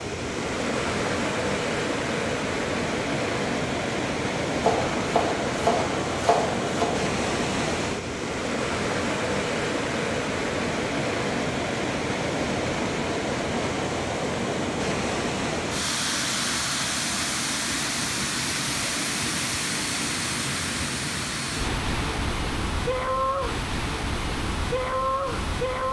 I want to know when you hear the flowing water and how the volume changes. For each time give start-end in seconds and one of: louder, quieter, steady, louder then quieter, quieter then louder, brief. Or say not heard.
0.0-25.8 steady.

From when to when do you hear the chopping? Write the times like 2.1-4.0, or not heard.
4.6-6.9.